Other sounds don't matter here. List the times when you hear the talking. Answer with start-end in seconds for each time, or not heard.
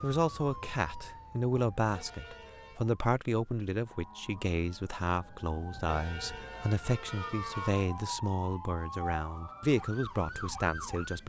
0.0-11.2.